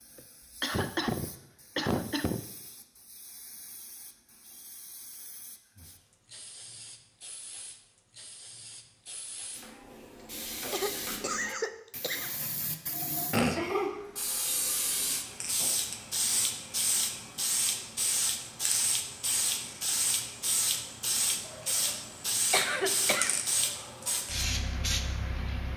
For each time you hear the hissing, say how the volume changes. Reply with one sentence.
The hissing can be heard from 0.0 to 25.7 s, getting louder.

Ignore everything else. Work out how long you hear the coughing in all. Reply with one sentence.
You can hear the coughing for 5 seconds altogether.